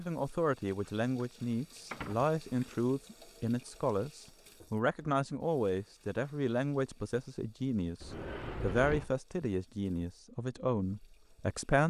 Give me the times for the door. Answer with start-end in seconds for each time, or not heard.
1.9-2.8, 8.0-9.1.